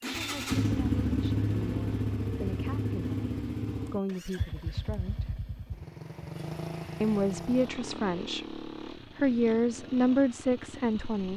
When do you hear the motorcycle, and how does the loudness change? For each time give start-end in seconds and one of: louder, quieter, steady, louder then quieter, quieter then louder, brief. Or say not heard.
0.0-11.3 quieter.